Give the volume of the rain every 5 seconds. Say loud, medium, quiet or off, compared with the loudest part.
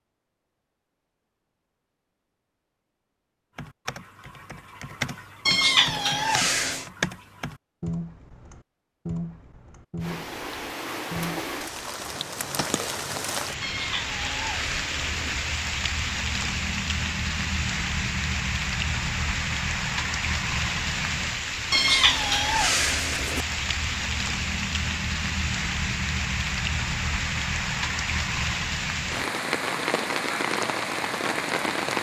off, off, medium, loud, loud, loud, loud.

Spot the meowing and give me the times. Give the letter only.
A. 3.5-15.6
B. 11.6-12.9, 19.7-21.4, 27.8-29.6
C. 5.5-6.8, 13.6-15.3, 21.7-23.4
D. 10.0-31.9
C.